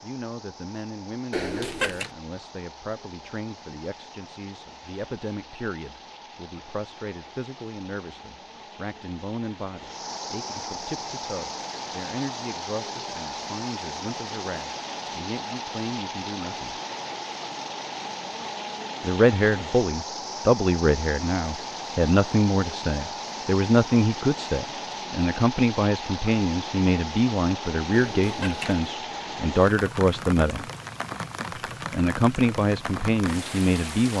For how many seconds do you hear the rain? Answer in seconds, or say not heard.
34 s.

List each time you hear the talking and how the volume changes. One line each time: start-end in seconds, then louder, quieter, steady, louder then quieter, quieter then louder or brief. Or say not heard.
0.0-16.8 steady
19.0-30.6 steady
31.9-34.1 brief.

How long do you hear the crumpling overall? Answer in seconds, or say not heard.
2 s.